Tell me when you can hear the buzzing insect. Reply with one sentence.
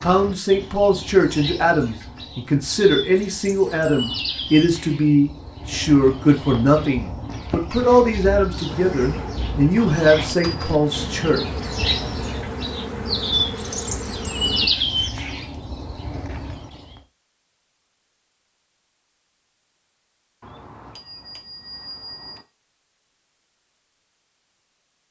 You can hear the buzzing insect from 8.7 to 14.7 s.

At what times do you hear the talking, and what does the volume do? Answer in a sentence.
You can hear the talking from 0.0 to 11.4 s, at a steady volume.